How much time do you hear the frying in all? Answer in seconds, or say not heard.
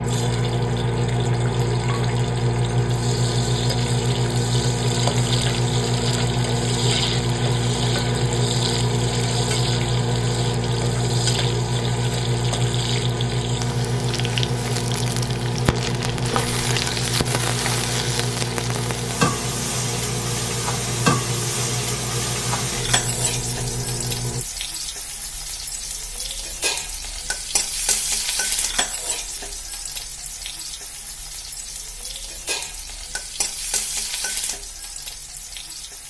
36 s.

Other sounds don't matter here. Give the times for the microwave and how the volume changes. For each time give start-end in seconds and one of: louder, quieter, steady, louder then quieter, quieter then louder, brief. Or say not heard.
0.0-24.4 quieter.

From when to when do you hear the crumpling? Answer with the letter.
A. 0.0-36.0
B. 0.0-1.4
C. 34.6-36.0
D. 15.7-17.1
D.